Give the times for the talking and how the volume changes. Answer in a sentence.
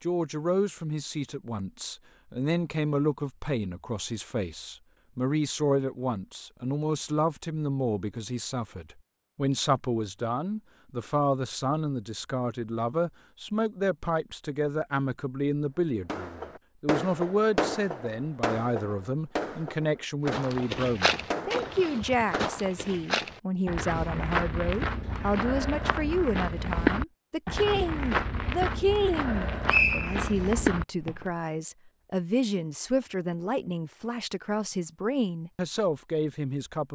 The talking can be heard from 0.0 to 36.8 s, at a steady volume.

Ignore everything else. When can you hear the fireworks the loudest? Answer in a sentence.
The volume of the fireworks peaks at 18 seconds.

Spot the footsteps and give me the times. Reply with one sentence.
The footsteps can be heard from 20.2 to 31.4 s.